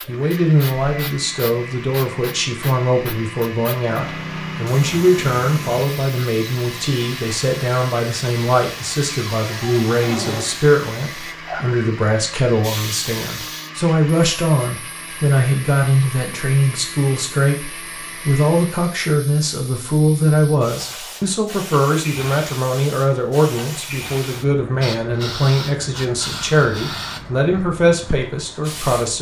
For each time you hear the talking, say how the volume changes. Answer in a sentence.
The talking can be heard from 0.1 to 29.1 s, at a steady volume.